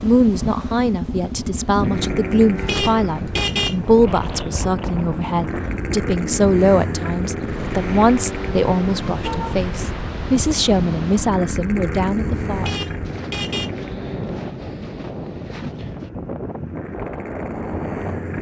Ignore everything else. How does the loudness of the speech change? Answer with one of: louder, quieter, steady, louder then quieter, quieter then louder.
steady.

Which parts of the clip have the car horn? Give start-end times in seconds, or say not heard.
2.5-3.8, 8.9-9.7, 12.6-13.7.